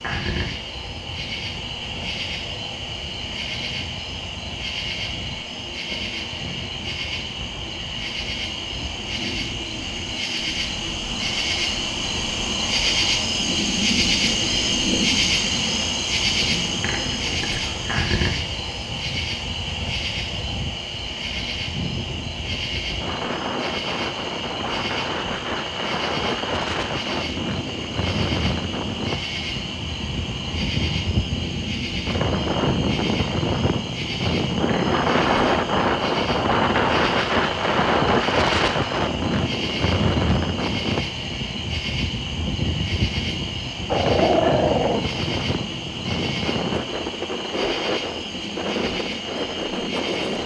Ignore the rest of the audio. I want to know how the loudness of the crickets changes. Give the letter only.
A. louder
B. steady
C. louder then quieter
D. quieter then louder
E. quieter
C.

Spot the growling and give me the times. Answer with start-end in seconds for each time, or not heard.
43.1-45.0.